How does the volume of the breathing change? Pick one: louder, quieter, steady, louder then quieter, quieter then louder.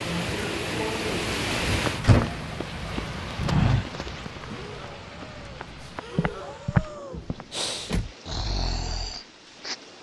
louder.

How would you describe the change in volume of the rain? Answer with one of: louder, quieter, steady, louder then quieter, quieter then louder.
quieter.